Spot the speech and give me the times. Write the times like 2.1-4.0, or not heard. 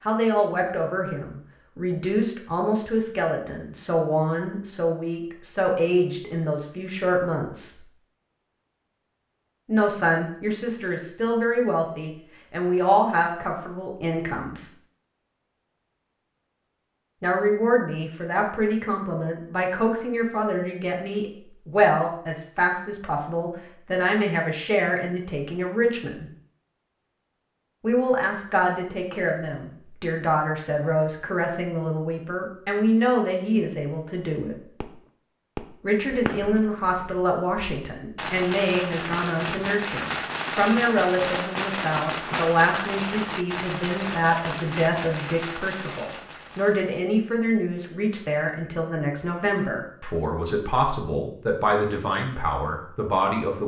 0.1-7.8, 9.7-14.7, 17.2-26.2, 27.8-34.6, 35.8-53.6.